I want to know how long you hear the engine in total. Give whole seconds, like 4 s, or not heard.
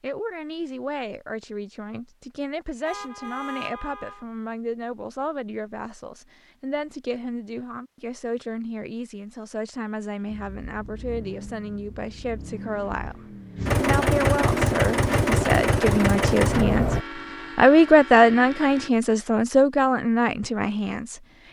7 s.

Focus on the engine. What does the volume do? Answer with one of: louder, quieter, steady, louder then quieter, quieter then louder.
louder.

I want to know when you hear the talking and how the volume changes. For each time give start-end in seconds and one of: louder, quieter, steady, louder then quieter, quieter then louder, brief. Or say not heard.
0.0-21.4 louder.